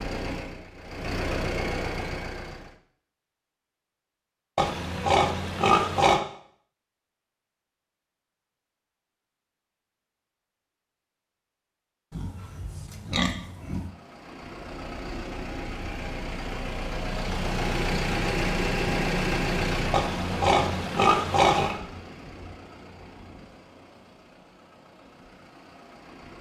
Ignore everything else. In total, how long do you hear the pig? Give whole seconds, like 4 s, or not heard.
5 s.